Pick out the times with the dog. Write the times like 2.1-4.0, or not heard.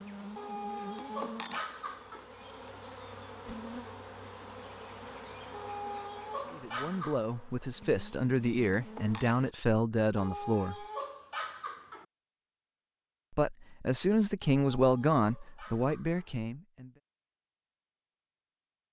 0.3-2.2, 5.5-7.2, 10.2-12.1, 14.6-16.3.